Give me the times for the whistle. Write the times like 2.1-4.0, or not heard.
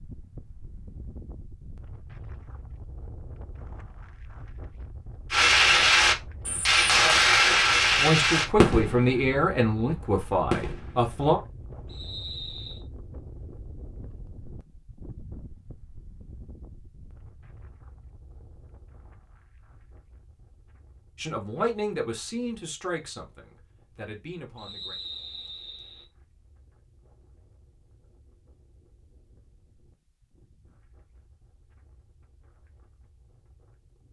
11.8-12.8, 24.6-26.1.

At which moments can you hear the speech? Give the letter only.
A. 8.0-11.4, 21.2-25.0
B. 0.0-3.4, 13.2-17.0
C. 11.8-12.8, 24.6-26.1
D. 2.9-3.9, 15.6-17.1
A.